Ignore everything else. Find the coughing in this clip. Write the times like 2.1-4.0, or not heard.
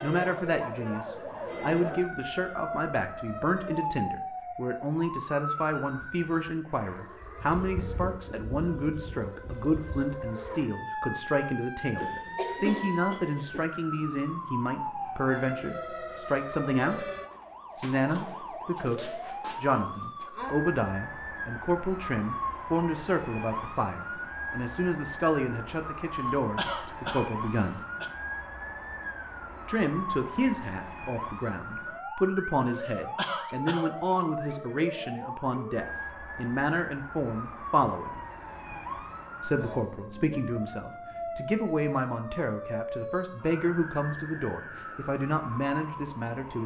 11.9-13.7, 26.1-28.1, 32.8-34.2.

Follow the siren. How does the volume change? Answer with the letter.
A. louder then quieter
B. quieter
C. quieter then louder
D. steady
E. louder
D.